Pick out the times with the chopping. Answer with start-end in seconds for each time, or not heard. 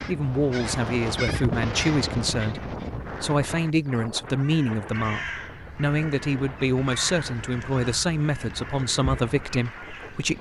not heard.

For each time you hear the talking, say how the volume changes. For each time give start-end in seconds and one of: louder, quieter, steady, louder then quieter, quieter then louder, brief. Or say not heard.
0.1-10.3 steady.